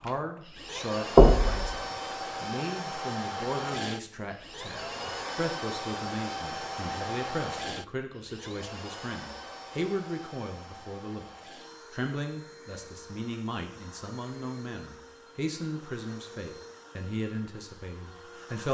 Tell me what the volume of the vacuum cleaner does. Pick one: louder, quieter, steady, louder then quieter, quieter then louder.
quieter.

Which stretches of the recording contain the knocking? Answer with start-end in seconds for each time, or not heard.
1.1-1.8.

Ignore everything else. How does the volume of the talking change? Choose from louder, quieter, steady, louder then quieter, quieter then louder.
steady.